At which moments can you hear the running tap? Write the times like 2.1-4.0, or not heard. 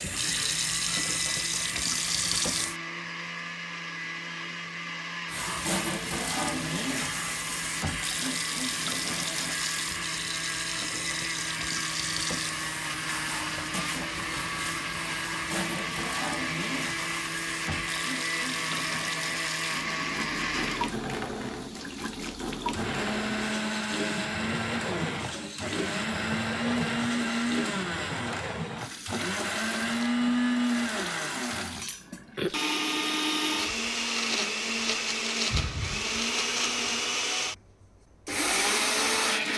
0.0-2.8, 5.2-32.6.